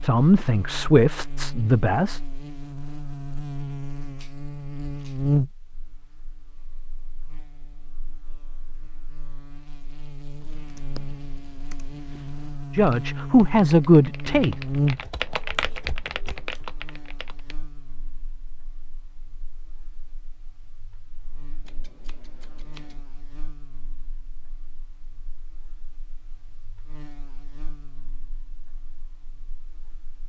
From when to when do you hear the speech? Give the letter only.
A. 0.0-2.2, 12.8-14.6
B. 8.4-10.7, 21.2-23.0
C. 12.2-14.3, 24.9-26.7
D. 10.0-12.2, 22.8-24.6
A.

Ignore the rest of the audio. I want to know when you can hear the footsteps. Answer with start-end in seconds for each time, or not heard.
not heard.